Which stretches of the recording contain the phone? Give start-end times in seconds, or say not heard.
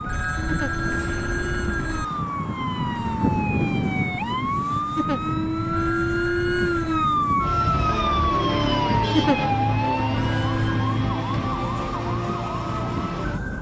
0.1-2.0, 5.7-7.0, 10.2-11.0.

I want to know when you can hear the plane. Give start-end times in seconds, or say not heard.
0.0-13.5.